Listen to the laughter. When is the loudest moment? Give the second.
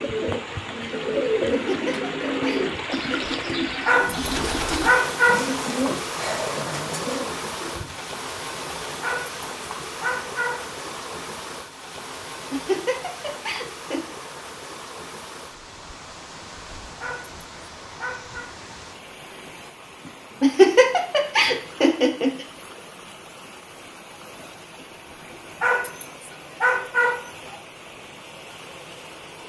21 s.